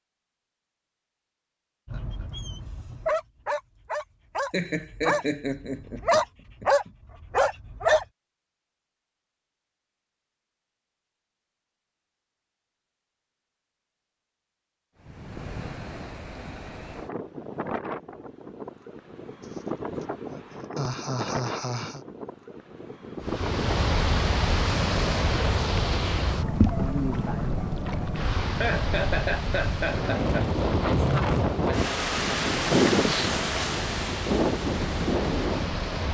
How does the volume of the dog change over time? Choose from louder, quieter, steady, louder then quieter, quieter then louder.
louder.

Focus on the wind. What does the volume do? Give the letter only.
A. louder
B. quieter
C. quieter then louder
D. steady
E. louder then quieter
A.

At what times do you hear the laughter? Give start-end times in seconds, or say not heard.
4.5-6.9, 19.4-22.1, 28.4-30.5.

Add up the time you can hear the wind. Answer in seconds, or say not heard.
21 s.